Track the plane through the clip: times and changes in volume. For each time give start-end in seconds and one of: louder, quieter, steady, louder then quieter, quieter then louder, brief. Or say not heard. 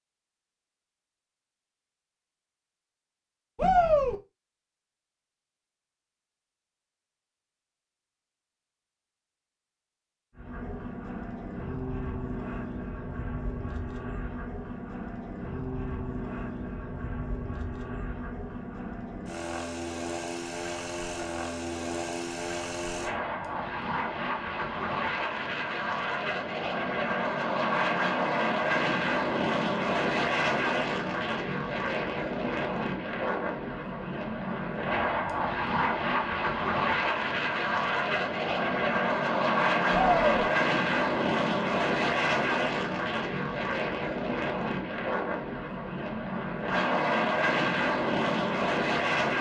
10.3-49.3 louder.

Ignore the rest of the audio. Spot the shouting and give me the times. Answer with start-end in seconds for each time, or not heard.
3.5-4.2, 39.9-40.5.